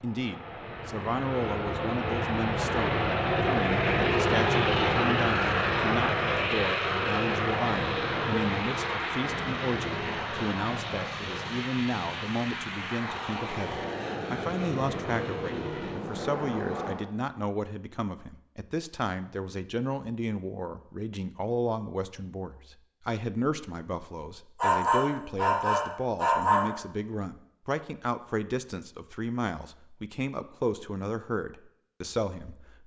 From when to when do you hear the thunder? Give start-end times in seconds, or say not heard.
not heard.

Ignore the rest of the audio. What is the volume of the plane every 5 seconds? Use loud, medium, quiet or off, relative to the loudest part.
loud, loud, medium, medium, off, off, off.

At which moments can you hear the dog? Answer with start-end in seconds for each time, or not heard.
24.6-26.6.